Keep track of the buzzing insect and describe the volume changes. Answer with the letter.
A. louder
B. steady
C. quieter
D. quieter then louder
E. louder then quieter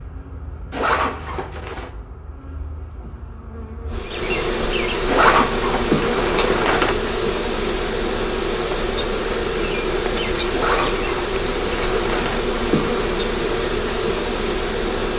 A.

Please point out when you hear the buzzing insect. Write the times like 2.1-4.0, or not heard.
0.0-15.1.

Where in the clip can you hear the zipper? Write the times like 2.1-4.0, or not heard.
0.7-1.9, 5.0-7.0, 10.5-12.4.